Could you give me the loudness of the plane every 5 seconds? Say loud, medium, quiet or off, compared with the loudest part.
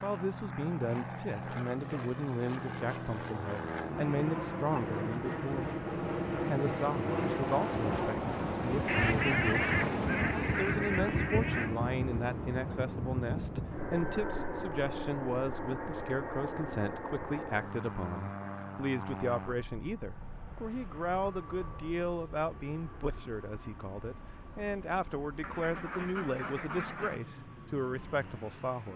medium, loud, loud, medium, quiet, quiet.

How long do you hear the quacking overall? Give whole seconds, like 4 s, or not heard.
5 s.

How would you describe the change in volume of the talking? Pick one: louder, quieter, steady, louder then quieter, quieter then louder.
steady.